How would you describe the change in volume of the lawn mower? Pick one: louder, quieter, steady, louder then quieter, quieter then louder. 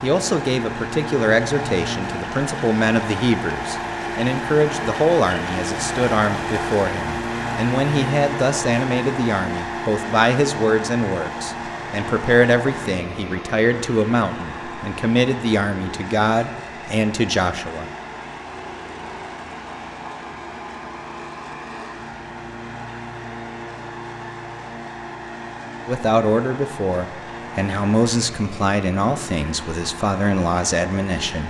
quieter.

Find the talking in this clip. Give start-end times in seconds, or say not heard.
0.0-17.9, 25.9-31.4.